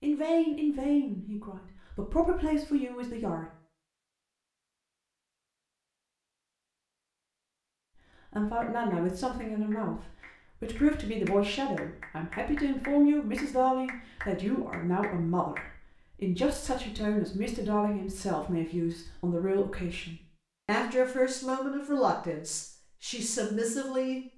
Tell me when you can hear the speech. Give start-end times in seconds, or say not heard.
0.0-3.5, 8.3-24.2.